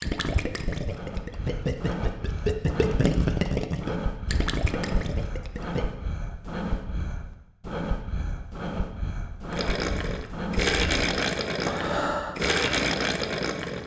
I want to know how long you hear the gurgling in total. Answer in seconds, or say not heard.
10 s.